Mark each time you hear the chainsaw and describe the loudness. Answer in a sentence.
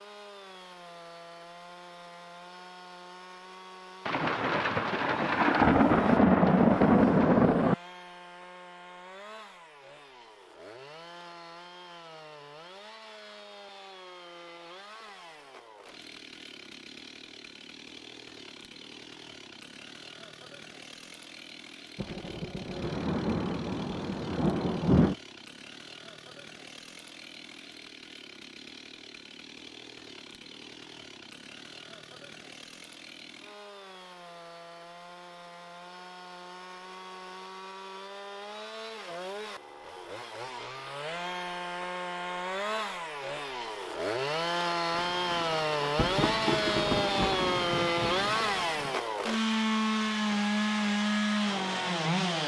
The chainsaw can be heard from 0.0 to 52.4 s, getting louder.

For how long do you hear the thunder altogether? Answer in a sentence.
You can hear the thunder for 11 seconds altogether.